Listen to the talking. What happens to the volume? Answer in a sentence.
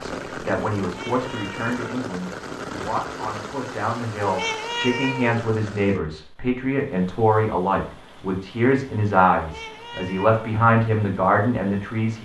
The volume of the talking goes up.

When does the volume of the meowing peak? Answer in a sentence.
The volume of the meowing peaks at 5 seconds.